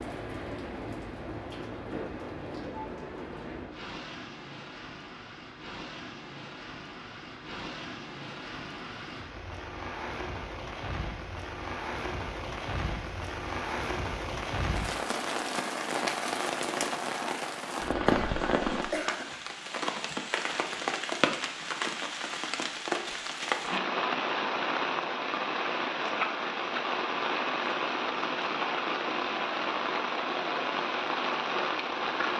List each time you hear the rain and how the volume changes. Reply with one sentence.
You can hear the rain from 0.0 to 32.3 s, getting louder.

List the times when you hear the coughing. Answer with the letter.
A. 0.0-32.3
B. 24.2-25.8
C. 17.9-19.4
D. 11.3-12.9
C.